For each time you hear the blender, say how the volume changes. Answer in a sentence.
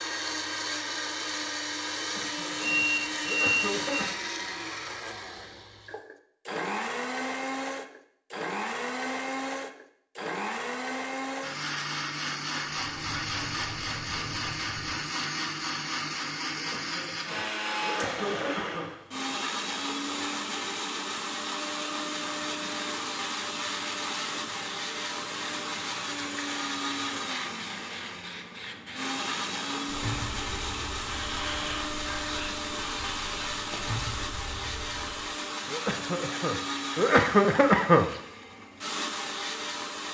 You can hear the blender from 0.0 to 40.0 s, at a steady volume.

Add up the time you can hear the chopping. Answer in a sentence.
The chopping can't be heard in this clip.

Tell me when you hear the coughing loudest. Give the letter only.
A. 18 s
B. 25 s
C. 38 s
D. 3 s
C.